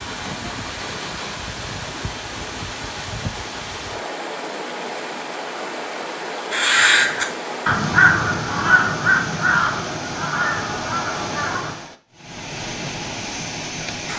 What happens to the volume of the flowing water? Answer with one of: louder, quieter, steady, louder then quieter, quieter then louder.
steady.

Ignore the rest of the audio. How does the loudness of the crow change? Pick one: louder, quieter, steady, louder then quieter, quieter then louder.
quieter.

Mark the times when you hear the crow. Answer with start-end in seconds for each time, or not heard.
6.5-11.8.